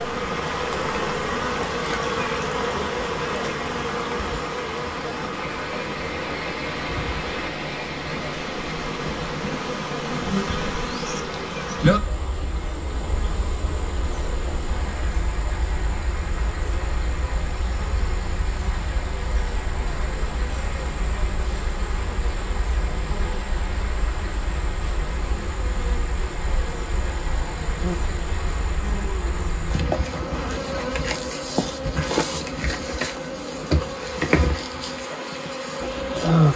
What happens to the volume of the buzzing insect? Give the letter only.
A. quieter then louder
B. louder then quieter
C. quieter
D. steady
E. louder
A.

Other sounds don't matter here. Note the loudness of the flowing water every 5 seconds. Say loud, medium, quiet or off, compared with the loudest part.
medium, loud, medium, medium, medium, medium, medium, medium.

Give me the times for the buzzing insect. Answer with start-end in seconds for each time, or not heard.
0.0-36.5.